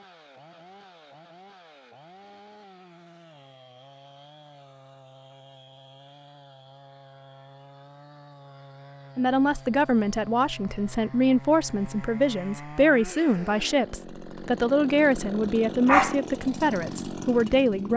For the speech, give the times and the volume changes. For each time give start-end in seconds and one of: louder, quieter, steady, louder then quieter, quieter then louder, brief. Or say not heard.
9.2-17.9 steady.